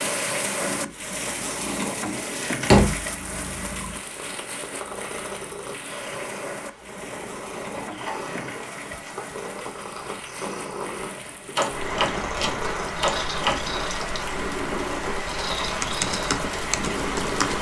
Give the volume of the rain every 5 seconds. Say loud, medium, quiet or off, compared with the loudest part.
loud, medium, loud, loud.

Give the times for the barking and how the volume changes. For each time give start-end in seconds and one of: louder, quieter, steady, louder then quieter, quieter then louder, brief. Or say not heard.
not heard.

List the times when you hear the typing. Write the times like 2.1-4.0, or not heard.
15.8-17.5.